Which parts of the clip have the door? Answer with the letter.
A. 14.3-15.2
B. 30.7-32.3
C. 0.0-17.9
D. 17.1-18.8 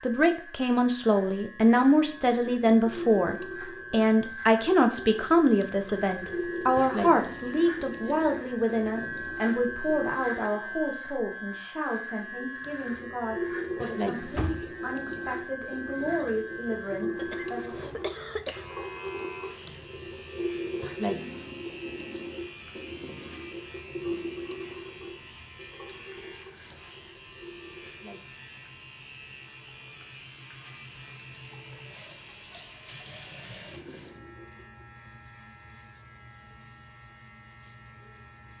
A.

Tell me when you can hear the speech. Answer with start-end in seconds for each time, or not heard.
0.0-17.9.